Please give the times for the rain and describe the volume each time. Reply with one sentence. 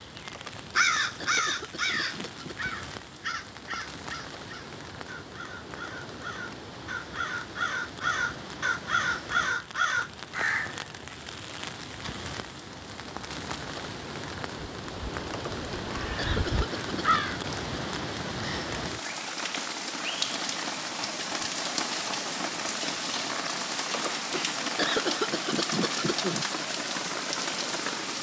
The rain can be heard from 0.0 to 28.1 s, getting louder.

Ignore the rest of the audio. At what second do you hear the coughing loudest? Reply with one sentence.
The volume of the coughing peaks at 25 seconds.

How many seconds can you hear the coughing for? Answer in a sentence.
You can hear the coughing for 7 seconds altogether.